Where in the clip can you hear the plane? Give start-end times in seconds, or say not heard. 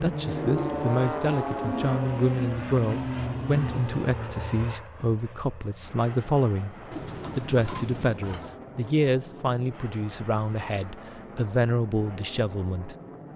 0.0-13.3.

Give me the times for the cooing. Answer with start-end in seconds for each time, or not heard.
0.2-2.0, 6.9-8.6.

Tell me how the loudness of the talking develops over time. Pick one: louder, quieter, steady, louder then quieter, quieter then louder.
steady.